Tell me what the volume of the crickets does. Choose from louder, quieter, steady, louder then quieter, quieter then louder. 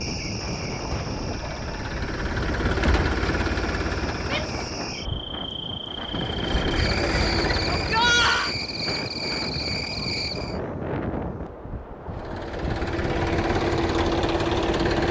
louder.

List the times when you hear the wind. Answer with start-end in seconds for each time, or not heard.
0.0-15.0.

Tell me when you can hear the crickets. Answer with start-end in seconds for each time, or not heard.
0.0-10.6.